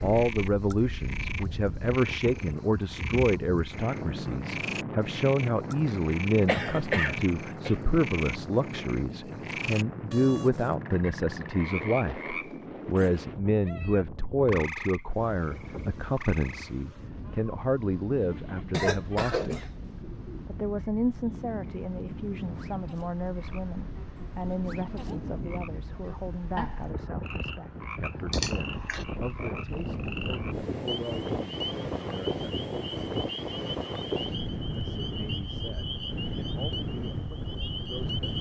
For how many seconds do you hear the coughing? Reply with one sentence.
The coughing can be heard for 4 seconds in total.